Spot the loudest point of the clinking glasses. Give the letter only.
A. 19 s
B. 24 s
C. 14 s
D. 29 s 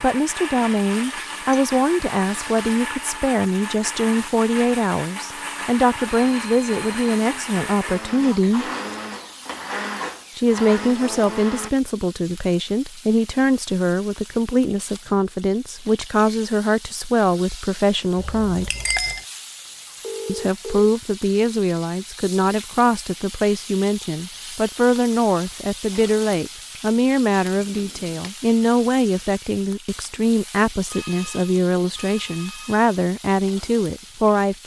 A.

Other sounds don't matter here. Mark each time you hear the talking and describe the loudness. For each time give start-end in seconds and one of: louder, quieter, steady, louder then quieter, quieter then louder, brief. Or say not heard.
0.0-8.7 steady
10.3-18.7 steady
20.2-34.6 steady.